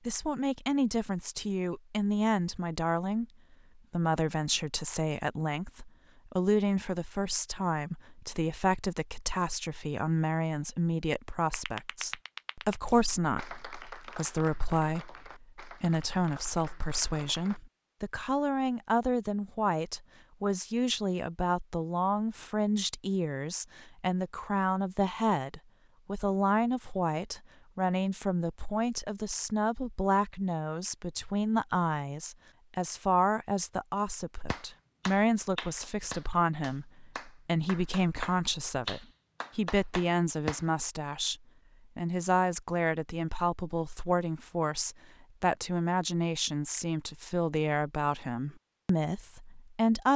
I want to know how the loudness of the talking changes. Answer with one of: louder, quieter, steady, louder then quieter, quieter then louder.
steady.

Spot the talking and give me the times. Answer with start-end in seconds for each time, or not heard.
0.1-3.2, 3.9-41.4, 42.0-50.1.